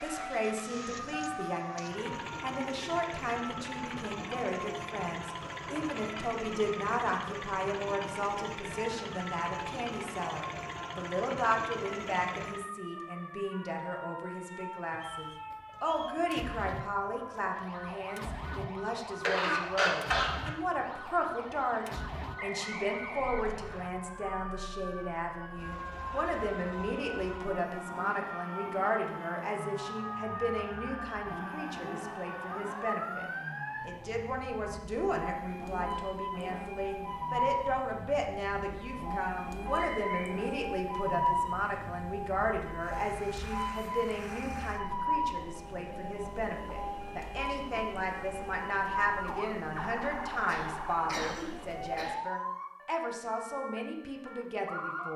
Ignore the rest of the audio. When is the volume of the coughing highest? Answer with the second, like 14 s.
20 s.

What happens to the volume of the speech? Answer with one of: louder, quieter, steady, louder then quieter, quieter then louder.
steady.